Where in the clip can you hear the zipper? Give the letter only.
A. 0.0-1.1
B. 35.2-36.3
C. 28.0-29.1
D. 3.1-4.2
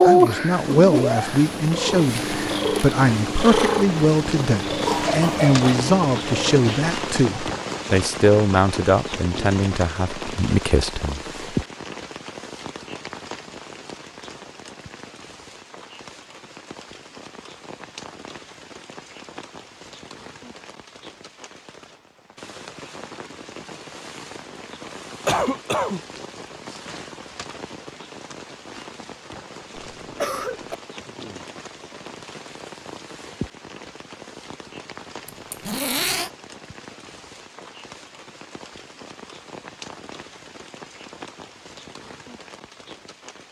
B.